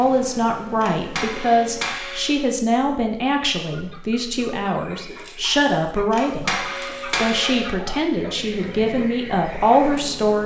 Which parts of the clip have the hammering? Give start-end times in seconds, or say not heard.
0.8-2.4, 6.1-7.7.